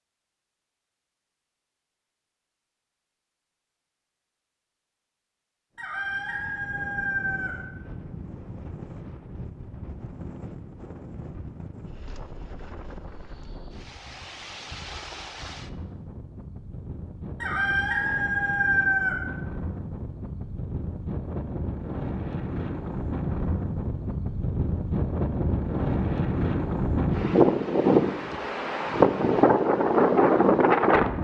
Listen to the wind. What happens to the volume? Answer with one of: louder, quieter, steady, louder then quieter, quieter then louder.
louder.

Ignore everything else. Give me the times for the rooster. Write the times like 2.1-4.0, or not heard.
5.8-7.5, 17.4-19.1.